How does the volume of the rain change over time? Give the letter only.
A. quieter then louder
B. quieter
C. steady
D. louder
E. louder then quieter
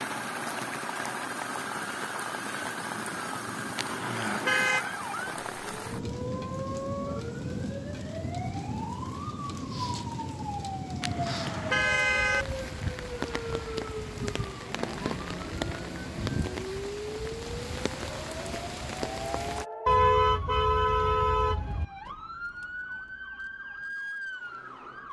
C.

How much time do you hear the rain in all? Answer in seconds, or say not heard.
20 s.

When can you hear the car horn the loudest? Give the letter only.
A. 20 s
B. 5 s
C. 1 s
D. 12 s
A.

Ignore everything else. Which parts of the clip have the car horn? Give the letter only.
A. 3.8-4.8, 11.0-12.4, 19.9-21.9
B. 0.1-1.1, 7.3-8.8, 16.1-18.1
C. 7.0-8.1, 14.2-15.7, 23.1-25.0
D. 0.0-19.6
A.